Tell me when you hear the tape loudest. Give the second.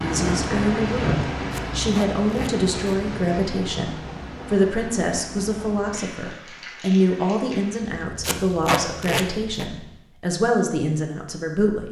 9 s.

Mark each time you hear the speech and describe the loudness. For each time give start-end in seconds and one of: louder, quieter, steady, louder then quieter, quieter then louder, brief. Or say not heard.
0.0-11.8 steady.